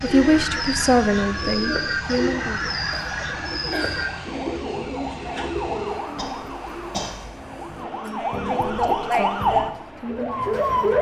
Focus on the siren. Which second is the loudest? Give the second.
9 s.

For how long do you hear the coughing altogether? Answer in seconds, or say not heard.
2 s.